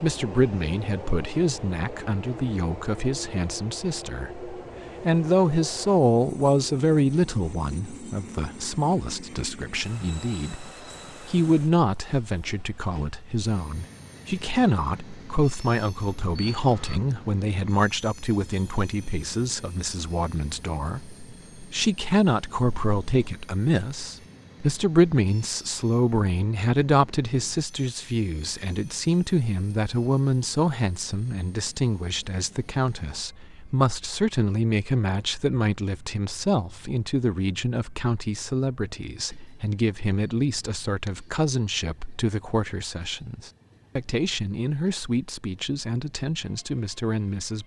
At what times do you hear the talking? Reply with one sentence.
You can hear the talking from 0.0 to 47.6 s.